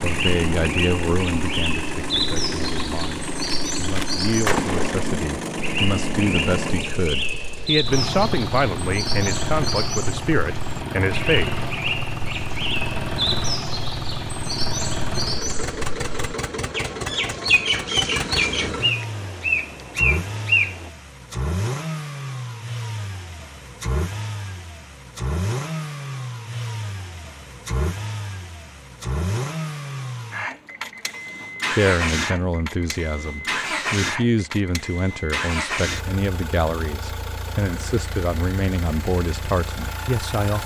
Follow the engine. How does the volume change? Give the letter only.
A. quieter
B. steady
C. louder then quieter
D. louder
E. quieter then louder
B.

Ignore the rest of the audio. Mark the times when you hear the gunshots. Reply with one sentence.
You can hear the gunshots from 3.5 to 5.0 s.